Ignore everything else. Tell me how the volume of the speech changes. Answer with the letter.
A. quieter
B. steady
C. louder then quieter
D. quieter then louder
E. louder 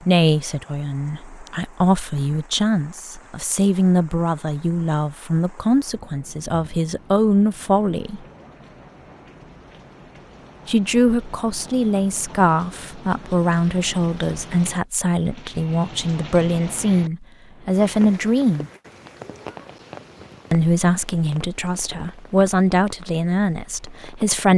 B.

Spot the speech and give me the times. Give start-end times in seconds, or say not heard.
0.0-8.2, 10.7-18.7, 20.5-24.5.